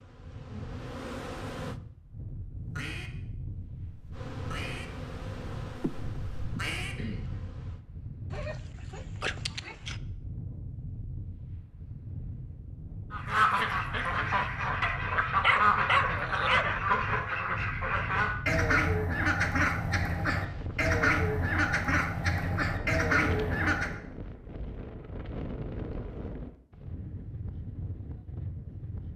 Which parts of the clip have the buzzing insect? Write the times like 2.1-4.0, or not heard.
0.0-1.8, 4.1-7.8.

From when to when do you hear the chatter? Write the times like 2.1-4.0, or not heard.
not heard.